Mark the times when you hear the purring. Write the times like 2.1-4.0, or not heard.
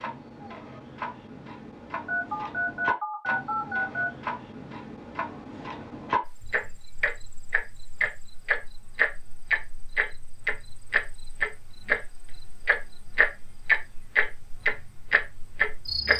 not heard.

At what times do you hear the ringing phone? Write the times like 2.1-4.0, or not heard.
2.0-4.1.